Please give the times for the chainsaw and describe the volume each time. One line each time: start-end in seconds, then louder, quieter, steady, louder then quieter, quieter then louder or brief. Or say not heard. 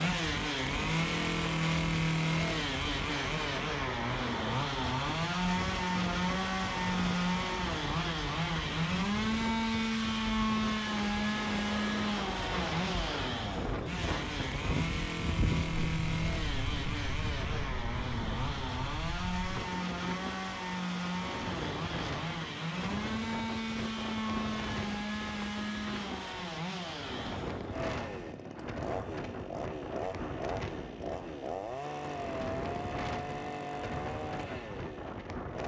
0.0-35.6 quieter.